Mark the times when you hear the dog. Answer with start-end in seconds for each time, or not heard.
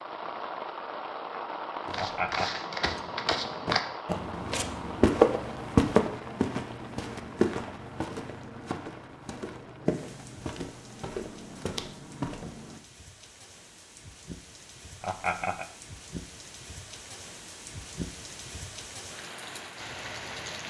not heard.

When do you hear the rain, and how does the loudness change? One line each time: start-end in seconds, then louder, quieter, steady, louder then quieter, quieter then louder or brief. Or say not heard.
0.0-20.6 quieter then louder.